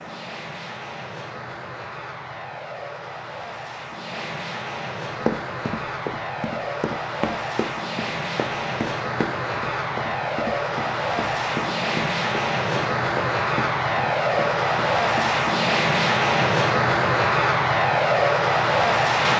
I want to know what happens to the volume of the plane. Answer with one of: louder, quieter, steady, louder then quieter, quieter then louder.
louder.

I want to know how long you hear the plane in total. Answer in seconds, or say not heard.
19 s.